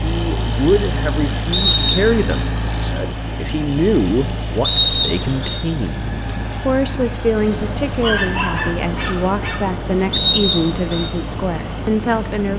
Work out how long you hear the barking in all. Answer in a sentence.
The barking can be heard for 2 seconds in total.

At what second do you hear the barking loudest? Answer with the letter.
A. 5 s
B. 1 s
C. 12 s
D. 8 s
D.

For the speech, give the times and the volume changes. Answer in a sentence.
You can hear the speech from 0.0 to 12.5 s, at a steady volume.